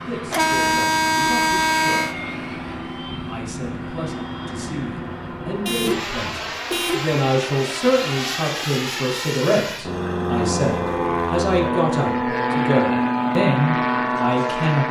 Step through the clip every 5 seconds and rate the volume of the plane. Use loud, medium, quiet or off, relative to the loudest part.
medium, medium, loud.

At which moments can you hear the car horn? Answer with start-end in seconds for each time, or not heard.
0.3-2.1, 5.7-7.2, 10.4-11.2.